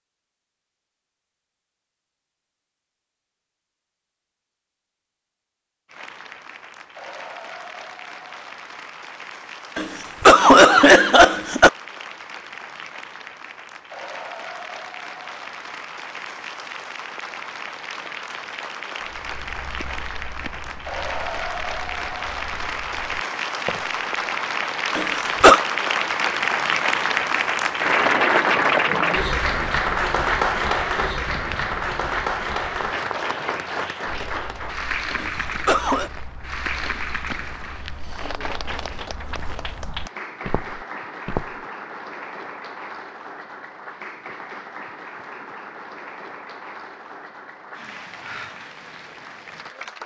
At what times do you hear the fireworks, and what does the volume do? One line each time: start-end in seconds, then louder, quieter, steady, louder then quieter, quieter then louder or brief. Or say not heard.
not heard.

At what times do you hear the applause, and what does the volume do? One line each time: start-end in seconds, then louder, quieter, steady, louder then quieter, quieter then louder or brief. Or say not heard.
5.8-50.0 louder then quieter.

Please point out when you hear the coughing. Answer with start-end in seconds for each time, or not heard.
9.8-11.7, 24.9-25.6, 35.1-36.1.